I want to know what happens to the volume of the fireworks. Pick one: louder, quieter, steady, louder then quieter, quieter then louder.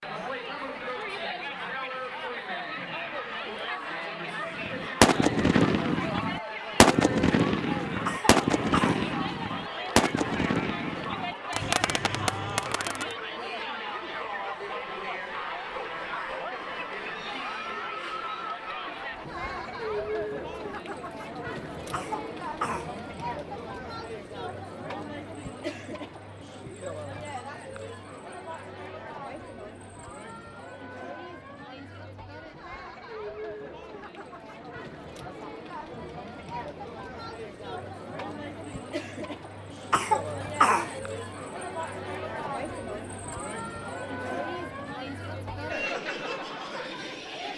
quieter.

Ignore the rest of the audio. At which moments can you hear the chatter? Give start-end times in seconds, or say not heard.
0.0-47.5.